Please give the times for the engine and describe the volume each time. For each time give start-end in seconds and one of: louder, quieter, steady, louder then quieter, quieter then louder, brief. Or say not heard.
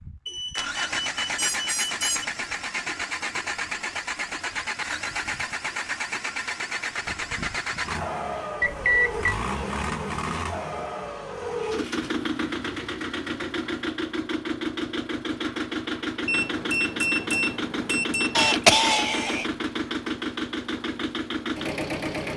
0.0-22.3 steady.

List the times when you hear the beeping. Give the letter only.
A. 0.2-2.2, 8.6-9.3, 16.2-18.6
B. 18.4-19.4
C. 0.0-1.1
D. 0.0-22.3
A.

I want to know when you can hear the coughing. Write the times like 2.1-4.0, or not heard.
18.4-19.4.